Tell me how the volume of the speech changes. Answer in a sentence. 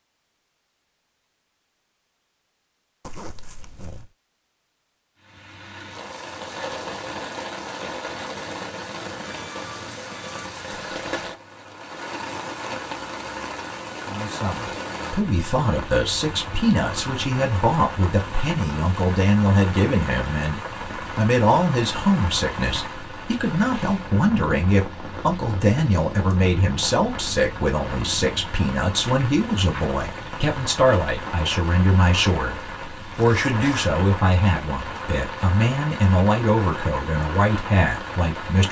The loudness of the speech stays about the same.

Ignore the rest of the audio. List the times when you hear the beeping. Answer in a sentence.
The beeping can be heard from 9.2 to 10.5 s.